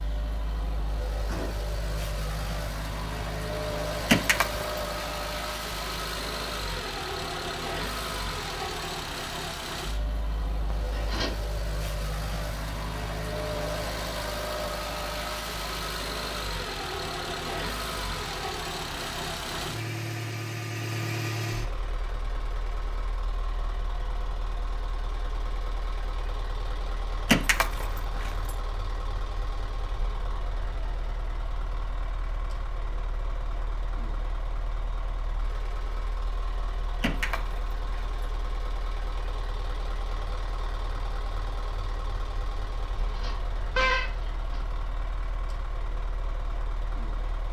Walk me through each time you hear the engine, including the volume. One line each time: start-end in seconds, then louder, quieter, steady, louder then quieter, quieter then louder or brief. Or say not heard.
0.0-47.4 quieter.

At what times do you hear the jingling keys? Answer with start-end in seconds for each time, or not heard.
4.0-5.1, 27.2-28.5, 37.0-38.2.